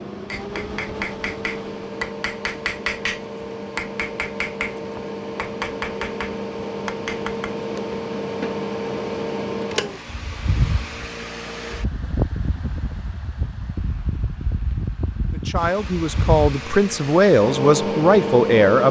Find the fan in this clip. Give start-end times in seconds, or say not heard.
0.0-18.8.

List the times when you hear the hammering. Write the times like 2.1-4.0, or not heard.
0.3-8.6.